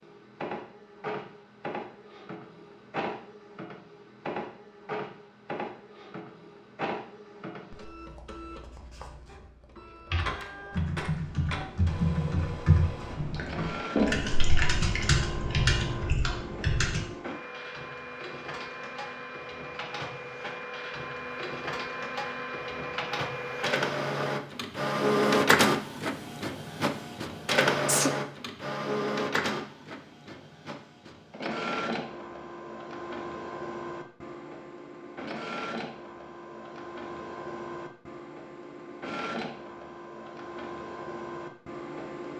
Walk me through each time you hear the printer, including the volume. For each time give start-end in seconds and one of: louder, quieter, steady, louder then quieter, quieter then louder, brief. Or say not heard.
0.0-42.3 louder then quieter.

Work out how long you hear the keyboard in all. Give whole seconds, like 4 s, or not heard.
7 s.